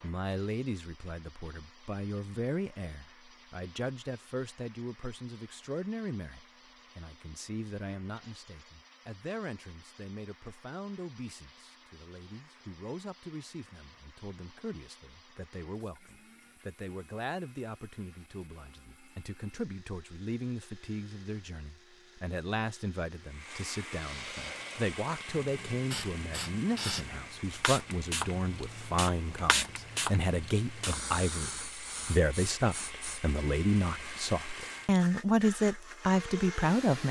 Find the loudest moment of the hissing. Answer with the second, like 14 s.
30 s.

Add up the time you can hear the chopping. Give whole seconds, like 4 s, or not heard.
not heard.